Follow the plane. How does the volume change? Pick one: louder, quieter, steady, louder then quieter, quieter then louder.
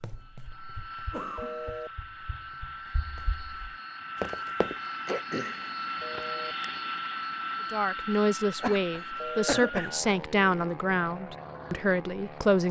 louder then quieter.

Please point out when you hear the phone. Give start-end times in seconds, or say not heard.
1.4-1.9, 6.0-6.5, 9.2-9.7.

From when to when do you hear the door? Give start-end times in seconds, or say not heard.
not heard.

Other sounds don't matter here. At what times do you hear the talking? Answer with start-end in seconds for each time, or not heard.
7.7-12.6.